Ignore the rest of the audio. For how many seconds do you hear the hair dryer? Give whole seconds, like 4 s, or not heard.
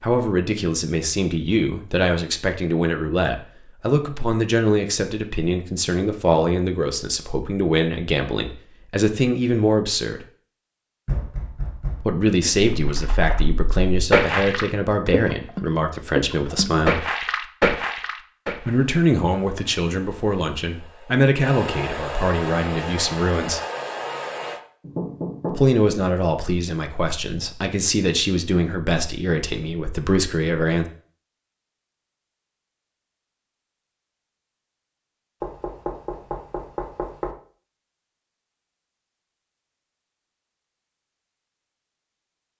6 s.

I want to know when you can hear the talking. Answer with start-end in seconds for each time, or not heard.
0.0-10.2, 12.0-17.1, 18.6-23.6, 25.5-30.9.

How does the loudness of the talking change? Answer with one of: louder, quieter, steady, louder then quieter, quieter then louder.
steady.